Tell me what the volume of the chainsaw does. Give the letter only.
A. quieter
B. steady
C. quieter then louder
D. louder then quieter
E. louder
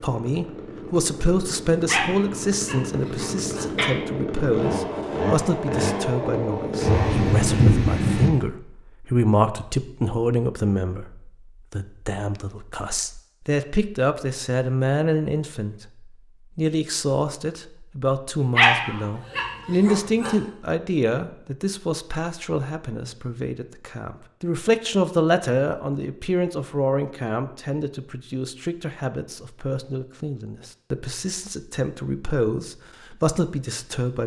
E.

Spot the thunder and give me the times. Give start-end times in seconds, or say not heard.
6.8-8.3.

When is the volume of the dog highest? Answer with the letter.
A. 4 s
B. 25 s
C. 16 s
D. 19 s
D.